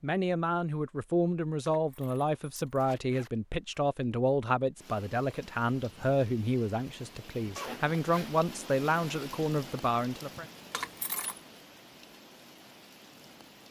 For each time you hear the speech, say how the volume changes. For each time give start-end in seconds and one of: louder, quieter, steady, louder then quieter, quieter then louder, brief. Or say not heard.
0.0-10.4 steady.